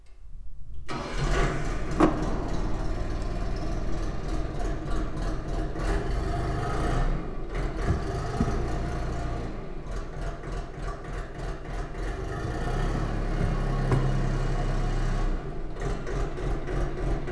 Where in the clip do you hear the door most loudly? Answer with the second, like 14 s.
2 s.